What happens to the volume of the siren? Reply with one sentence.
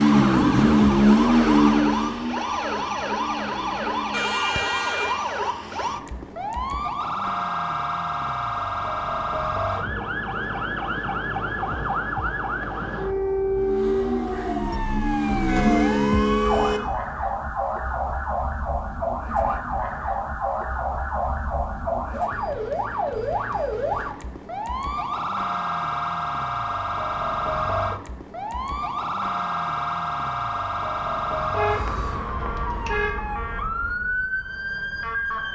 The loudness of the siren stays about the same.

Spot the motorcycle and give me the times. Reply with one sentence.
You can hear the motorcycle from 0.0 to 4.4 s and from 13.5 to 16.9 s.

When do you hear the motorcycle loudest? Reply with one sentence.
The loudest moment of the motorcycle is at 1 second.